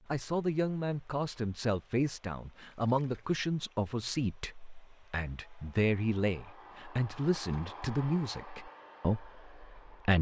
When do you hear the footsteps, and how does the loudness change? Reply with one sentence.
You can't hear the footsteps here.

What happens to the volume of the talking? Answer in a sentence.
The volume of the talking stays about the same.